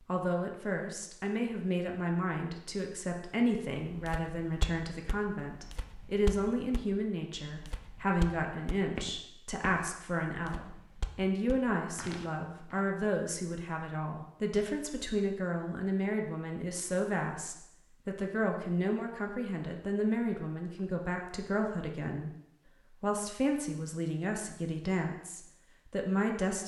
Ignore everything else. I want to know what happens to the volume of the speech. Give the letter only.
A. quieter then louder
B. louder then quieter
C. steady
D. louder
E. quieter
C.